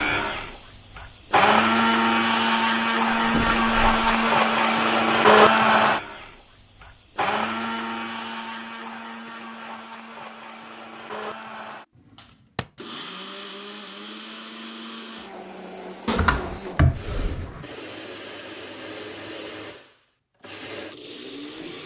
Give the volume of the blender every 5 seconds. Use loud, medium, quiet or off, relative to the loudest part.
loud, loud, quiet, quiet, quiet.